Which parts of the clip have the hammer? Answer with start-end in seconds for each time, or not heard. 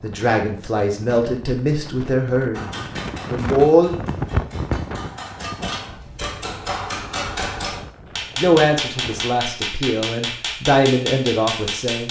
2.5-12.0.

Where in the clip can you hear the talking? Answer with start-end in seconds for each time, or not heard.
0.0-3.9, 8.3-12.0.